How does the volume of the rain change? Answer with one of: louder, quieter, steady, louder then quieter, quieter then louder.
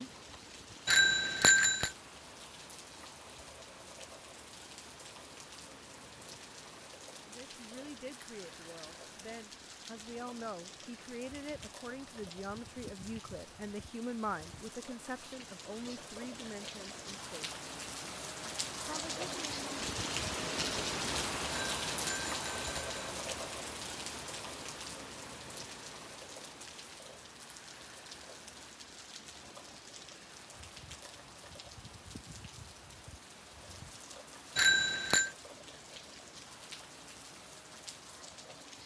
louder then quieter.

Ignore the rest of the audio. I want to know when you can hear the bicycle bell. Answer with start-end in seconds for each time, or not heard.
0.8-1.9, 21.6-23.0, 34.5-35.3.